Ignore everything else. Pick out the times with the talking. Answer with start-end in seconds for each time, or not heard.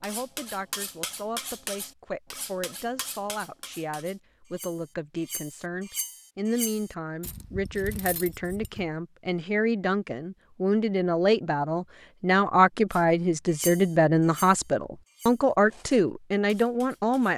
0.0-17.3.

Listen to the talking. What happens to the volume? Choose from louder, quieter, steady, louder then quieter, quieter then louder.
louder.